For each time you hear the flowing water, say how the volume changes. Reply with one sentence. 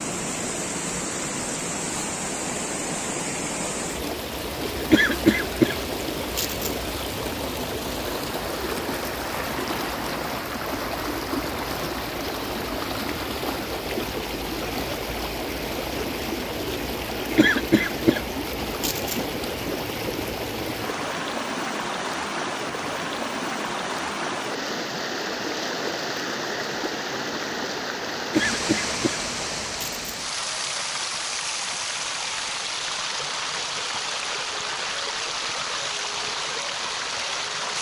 You can hear the flowing water from 0.0 to 37.7 s, at a steady volume.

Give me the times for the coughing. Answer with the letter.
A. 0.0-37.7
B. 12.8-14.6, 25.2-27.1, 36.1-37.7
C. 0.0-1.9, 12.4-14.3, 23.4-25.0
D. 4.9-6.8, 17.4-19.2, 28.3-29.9
D.